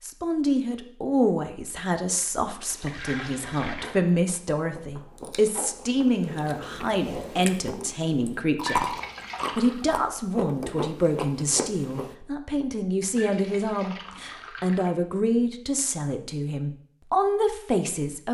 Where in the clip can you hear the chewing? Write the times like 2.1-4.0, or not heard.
3.4-12.2.